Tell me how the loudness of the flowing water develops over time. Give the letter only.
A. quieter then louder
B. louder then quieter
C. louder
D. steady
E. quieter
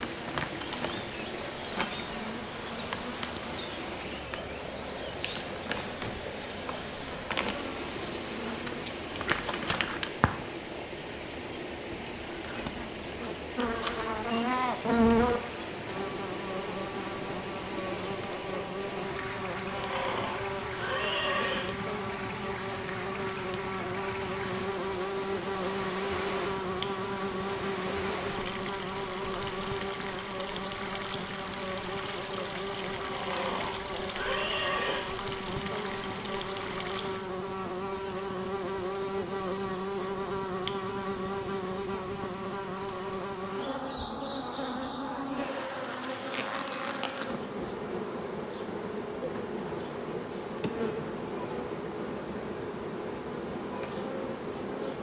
D.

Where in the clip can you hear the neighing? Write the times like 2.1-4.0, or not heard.
19.7-21.6, 33.0-35.0.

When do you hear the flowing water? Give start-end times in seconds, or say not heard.
0.0-37.3.